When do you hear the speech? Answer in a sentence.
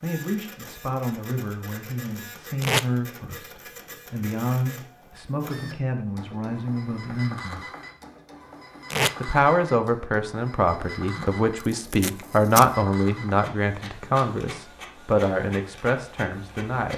The speech can be heard from 0.0 to 7.6 s and from 9.2 to 16.9 s.